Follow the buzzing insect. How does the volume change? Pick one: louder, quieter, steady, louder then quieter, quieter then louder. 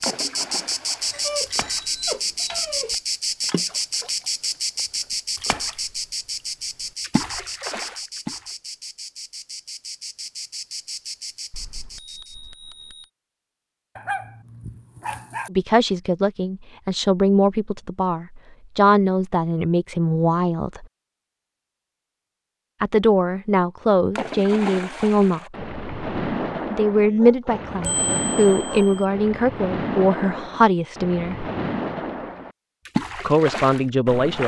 quieter.